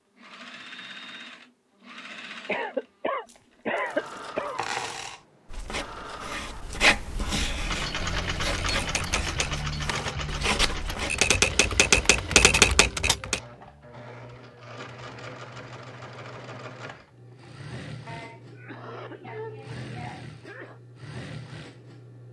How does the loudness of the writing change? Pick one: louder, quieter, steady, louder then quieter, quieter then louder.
quieter then louder.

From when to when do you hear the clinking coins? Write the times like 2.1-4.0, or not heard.
3.2-5.2.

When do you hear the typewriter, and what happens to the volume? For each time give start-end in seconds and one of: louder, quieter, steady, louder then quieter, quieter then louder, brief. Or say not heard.
8.6-13.4 louder.